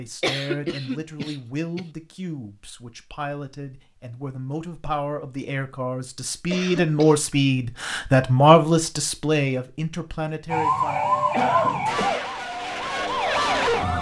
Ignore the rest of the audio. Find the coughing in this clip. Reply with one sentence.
You can hear the coughing from 0.2 to 1.8 s, from 6.5 to 7.2 s and from 11.3 to 12.3 s.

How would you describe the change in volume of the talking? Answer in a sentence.
The volume of the talking goes up, then down.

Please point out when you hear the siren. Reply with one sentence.
You can hear the siren from 10.5 to 13.9 s.